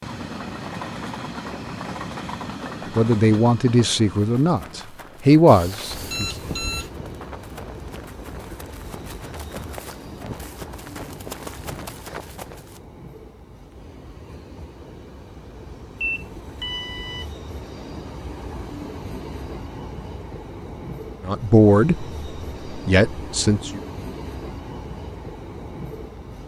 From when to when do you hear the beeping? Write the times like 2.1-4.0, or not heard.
5.5-6.9, 15.9-17.4.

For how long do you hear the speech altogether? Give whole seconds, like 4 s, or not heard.
6 s.